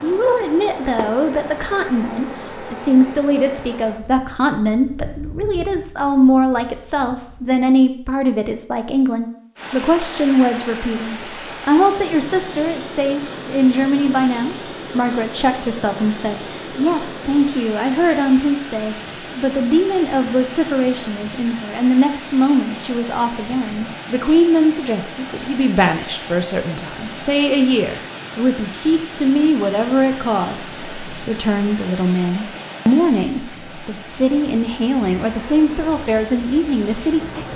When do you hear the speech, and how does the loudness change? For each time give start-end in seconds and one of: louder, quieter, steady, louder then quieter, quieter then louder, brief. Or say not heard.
0.0-37.5 steady.